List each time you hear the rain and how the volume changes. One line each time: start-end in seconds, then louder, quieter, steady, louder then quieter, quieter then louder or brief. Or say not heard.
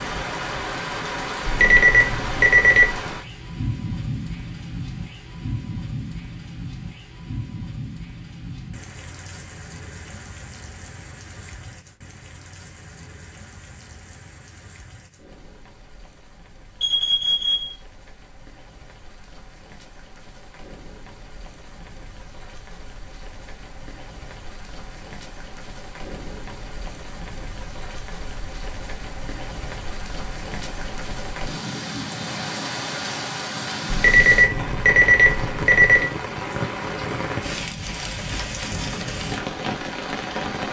0.0-40.6 quieter then louder.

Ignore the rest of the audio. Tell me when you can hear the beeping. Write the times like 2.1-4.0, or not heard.
1.4-3.0, 16.8-17.8, 33.9-36.1.